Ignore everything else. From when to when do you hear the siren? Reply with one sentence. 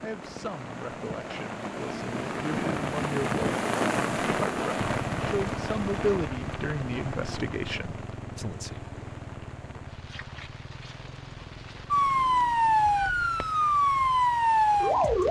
You can hear the siren from 11.9 to 15.2 s.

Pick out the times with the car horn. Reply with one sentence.
You can't hear the car horn here.